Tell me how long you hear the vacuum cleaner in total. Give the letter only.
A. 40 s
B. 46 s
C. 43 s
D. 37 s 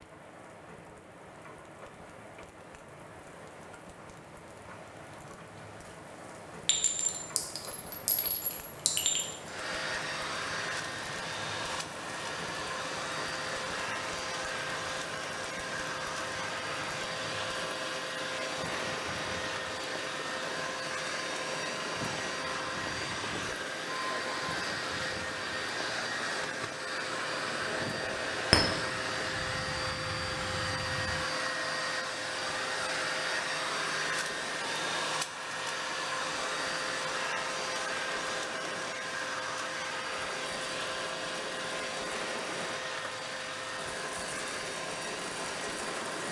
D.